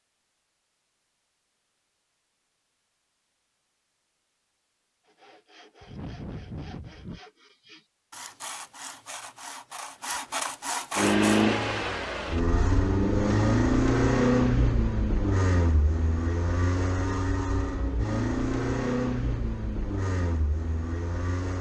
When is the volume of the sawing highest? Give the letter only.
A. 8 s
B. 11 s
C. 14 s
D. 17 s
B.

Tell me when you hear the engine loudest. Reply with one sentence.
The volume of the engine peaks at 14 seconds.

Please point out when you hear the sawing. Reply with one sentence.
You can hear the sawing from 5.2 to 11.4 s.